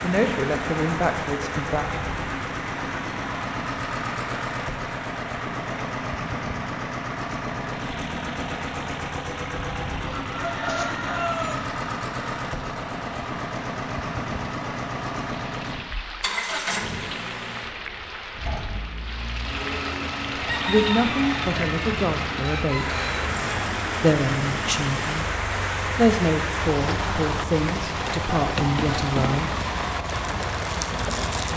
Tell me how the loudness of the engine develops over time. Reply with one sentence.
The loudness of the engine stays about the same.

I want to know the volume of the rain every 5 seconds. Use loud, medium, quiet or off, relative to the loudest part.
medium, medium, medium, medium, loud, loud, loud.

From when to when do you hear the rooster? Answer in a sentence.
You can hear the rooster from 10.1 to 11.7 s and from 20.4 to 23.7 s.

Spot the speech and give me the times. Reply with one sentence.
The speech can be heard from 0.0 to 1.9 s, from 20.6 to 22.9 s, from 24.0 to 25.2 s and from 25.9 to 29.6 s.